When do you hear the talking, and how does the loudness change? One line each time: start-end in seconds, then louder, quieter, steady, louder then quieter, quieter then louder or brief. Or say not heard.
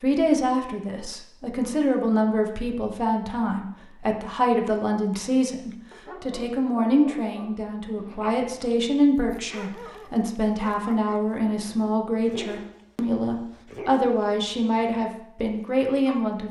0.0-16.4 steady.